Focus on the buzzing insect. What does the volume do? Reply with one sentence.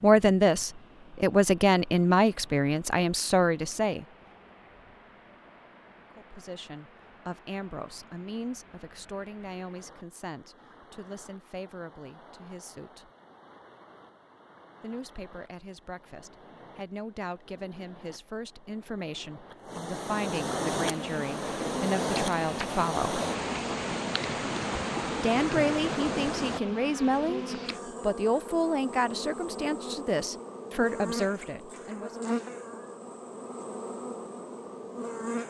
The volume of the buzzing insect stays about the same.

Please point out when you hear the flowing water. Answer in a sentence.
The flowing water can be heard from 0.0 to 26.6 s.